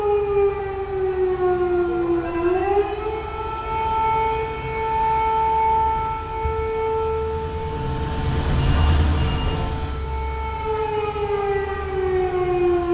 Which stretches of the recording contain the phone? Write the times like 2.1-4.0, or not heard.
2.0-2.9, 7.8-9.7.